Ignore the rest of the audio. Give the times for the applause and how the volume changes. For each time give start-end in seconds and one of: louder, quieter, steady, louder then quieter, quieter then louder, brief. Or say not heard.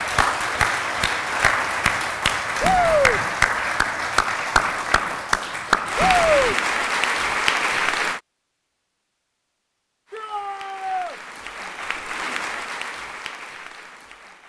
0.0-8.2 steady
10.1-14.4 louder then quieter.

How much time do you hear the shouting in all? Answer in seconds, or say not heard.
2 s.